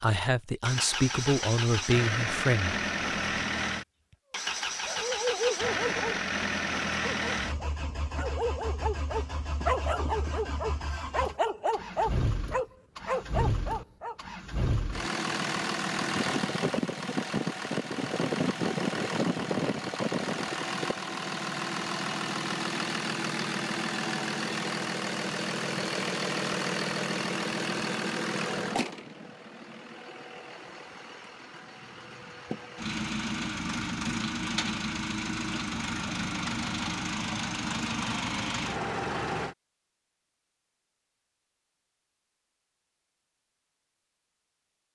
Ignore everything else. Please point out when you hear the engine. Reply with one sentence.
You can hear the engine from 0.7 to 39.5 s.